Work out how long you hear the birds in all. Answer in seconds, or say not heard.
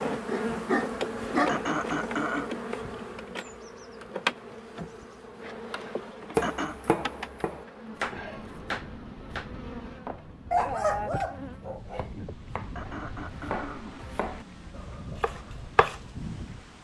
not heard.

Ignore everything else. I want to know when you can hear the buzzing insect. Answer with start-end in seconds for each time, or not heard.
0.0-16.7.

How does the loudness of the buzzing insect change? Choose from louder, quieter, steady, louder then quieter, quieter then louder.
quieter.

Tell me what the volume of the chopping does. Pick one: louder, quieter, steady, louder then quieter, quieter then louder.
quieter then louder.